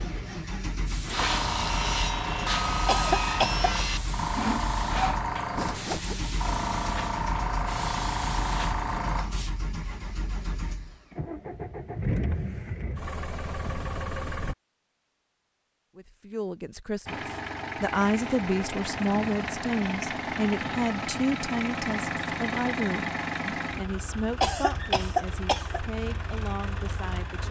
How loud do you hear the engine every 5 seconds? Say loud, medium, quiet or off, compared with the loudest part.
medium, medium, loud, loud, loud, medium.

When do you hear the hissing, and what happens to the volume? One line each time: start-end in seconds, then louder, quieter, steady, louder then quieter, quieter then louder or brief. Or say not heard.
0.0-9.6 steady.